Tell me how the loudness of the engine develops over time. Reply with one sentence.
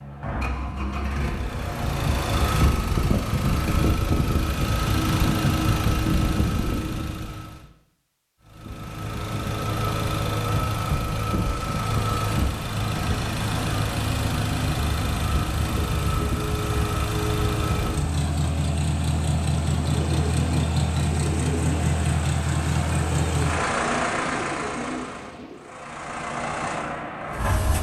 The volume of the engine stays about the same.